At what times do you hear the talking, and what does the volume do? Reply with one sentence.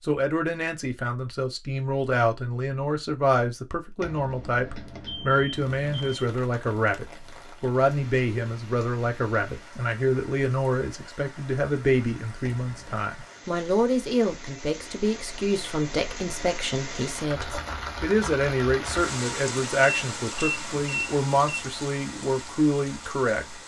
You can hear the talking from 0.1 to 23.6 s, at a steady volume.